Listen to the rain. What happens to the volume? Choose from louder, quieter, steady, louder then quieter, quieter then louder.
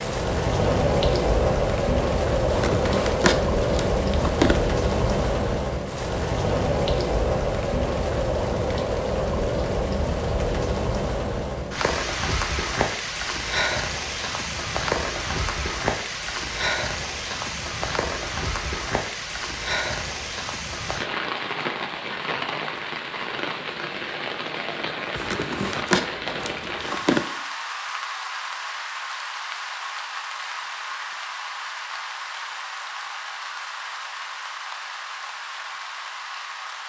quieter.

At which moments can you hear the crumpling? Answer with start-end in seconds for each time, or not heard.
2.5-4.8, 25.1-27.2.